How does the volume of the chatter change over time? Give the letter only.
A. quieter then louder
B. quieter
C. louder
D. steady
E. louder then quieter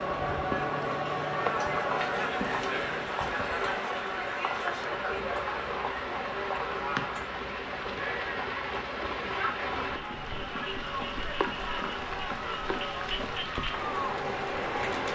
B.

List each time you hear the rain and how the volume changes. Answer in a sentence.
You can hear the rain from 0.0 to 15.1 s, at a steady volume.